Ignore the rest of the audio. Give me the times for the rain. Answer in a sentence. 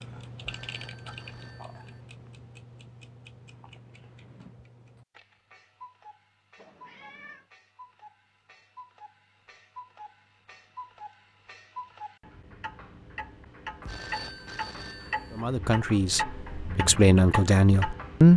The rain can't be heard in this clip.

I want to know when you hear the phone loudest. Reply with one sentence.
The loudest moment of the phone is at 14 seconds.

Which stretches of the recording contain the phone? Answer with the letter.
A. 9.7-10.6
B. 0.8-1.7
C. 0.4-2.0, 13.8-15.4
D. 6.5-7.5
C.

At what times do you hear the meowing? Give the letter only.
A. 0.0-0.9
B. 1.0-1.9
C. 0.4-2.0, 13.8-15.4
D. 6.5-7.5
D.